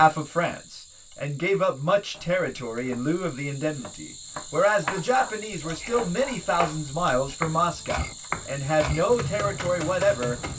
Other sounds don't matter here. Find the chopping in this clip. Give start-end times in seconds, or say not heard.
2.1-10.5.